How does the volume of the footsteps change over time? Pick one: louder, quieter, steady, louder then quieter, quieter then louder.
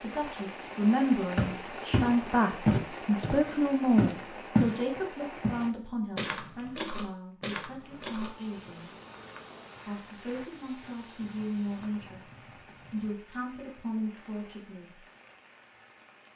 quieter.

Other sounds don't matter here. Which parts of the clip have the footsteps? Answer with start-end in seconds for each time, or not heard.
1.4-11.9.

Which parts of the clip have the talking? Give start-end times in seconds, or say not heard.
0.0-8.9, 9.8-15.1.